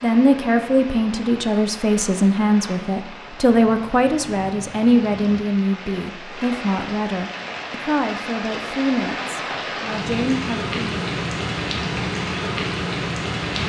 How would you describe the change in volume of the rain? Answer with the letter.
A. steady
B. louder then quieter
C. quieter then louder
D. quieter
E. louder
E.